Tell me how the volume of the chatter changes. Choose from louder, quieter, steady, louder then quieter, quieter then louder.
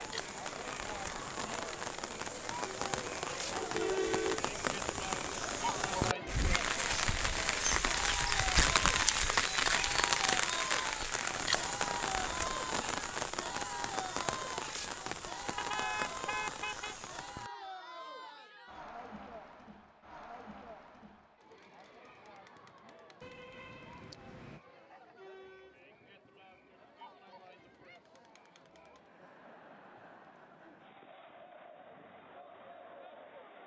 quieter.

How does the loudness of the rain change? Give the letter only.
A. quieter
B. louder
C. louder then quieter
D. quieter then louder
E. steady
C.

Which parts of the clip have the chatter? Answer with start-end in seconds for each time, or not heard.
0.0-33.6.